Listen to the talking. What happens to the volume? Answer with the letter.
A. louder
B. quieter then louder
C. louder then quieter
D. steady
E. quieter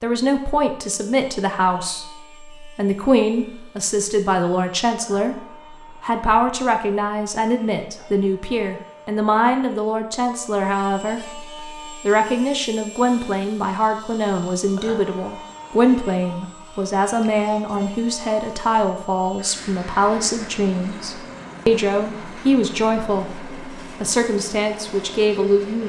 D.